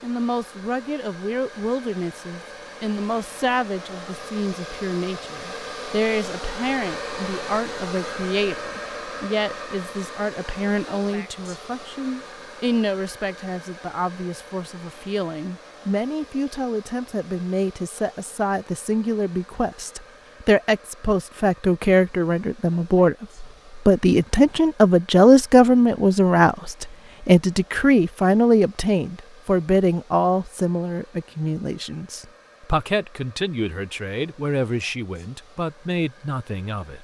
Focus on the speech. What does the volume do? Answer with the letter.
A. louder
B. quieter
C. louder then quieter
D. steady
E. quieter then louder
C.